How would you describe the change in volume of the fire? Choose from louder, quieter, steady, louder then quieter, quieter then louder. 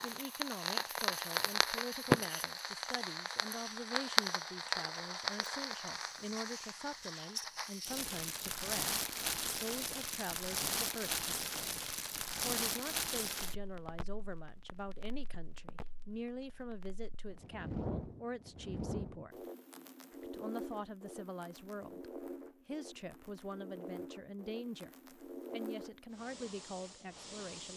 quieter.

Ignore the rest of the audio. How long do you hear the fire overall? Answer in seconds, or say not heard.
28 s.